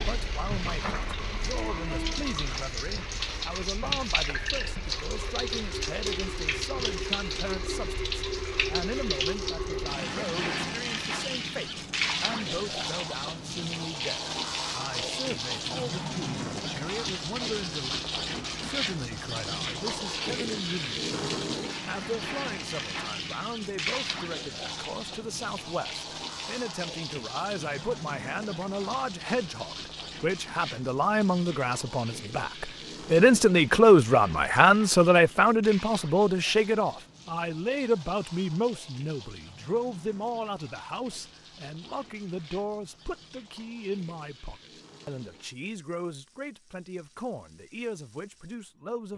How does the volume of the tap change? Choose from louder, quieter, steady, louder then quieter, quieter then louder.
quieter.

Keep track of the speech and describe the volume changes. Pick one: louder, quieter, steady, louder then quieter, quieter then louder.
louder then quieter.